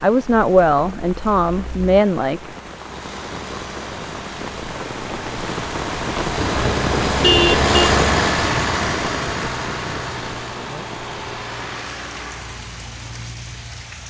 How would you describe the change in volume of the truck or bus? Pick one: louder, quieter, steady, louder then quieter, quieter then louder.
louder then quieter.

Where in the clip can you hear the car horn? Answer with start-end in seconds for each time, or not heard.
6.3-8.0.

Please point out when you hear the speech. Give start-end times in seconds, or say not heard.
0.0-2.5.